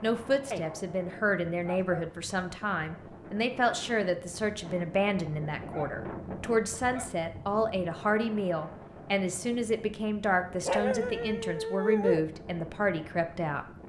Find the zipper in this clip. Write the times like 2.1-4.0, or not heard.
not heard.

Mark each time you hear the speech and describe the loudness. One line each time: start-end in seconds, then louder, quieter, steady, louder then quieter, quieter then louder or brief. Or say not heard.
0.0-13.7 steady.